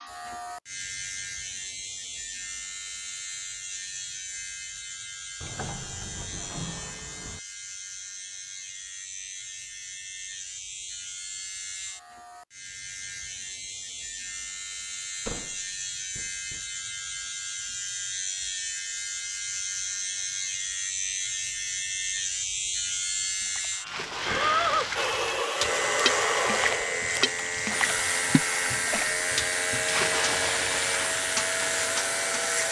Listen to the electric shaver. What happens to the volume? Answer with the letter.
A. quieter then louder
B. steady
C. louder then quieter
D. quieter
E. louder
E.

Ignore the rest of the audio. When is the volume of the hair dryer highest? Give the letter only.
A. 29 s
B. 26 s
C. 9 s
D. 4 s
B.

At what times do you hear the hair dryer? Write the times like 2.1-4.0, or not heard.
24.9-32.6.